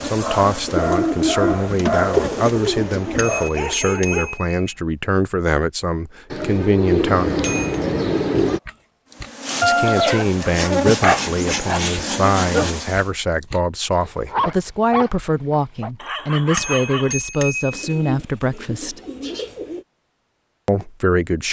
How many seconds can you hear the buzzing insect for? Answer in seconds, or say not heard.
7 s.